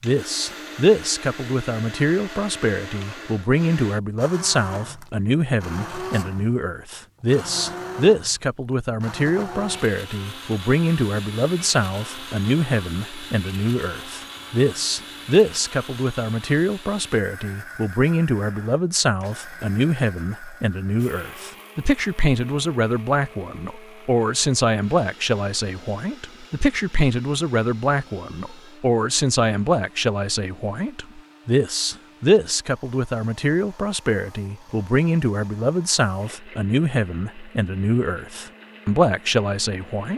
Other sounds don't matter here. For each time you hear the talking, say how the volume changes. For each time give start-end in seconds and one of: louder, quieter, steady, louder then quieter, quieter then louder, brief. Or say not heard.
0.0-40.1 steady.